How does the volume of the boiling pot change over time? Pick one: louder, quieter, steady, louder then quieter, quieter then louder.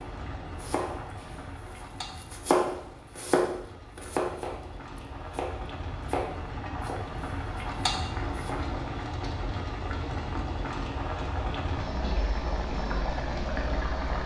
louder.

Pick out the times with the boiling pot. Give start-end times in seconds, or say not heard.
0.0-14.2.